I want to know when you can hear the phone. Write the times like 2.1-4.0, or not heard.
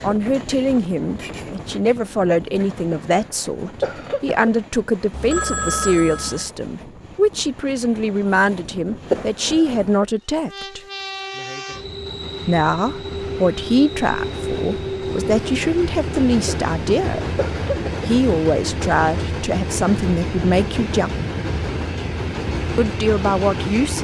5.1-6.5.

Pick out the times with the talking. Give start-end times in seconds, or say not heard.
0.0-10.8, 12.4-17.3, 18.1-21.1, 22.8-23.9.